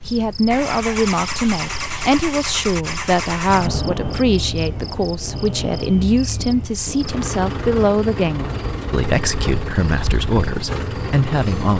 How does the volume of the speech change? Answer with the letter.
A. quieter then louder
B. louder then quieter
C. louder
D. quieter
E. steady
E.